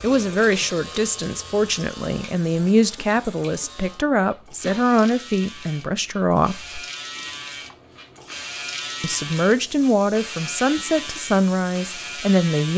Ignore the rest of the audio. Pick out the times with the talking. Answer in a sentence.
The talking can be heard from 0.0 to 6.8 s and from 9.0 to 12.7 s.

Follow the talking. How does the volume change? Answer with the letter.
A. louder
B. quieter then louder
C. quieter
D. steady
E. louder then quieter
D.